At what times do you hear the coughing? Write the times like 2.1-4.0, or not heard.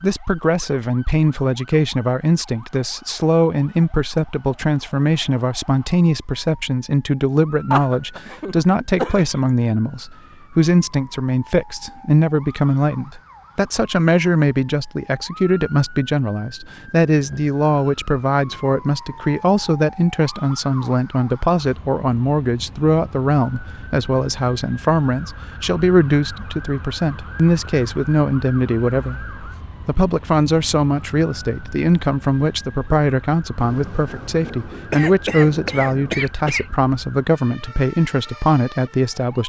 7.7-9.3, 34.9-36.6.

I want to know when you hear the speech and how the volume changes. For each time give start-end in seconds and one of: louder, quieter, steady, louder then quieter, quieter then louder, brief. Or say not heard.
0.0-39.4 steady.